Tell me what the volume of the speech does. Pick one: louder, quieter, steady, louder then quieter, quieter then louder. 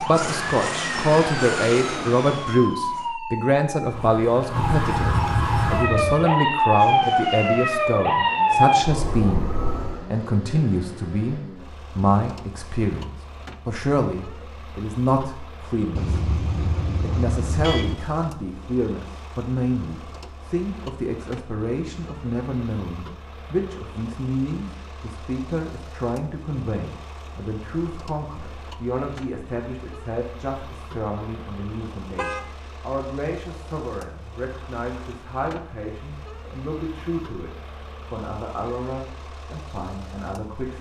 quieter.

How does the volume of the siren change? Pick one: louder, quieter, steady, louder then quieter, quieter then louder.
louder.